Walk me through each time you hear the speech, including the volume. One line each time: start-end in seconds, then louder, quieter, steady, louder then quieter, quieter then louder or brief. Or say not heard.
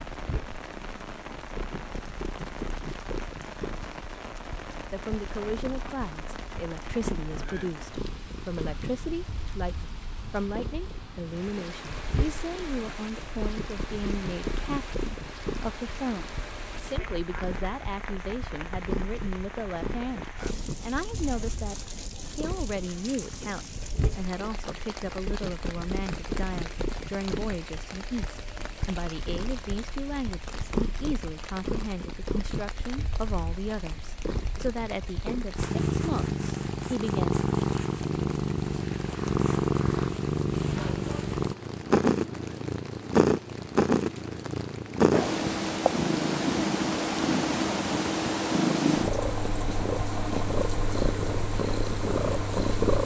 4.9-21.8 steady
22.4-37.3 steady.